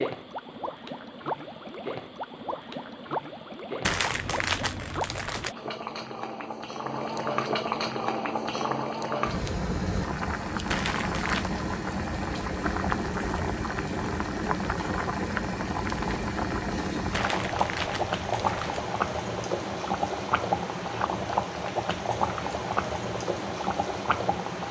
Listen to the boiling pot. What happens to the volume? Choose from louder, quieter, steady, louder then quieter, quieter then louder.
louder.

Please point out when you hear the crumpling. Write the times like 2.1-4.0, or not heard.
3.8-5.5, 10.7-11.5, 17.1-18.8.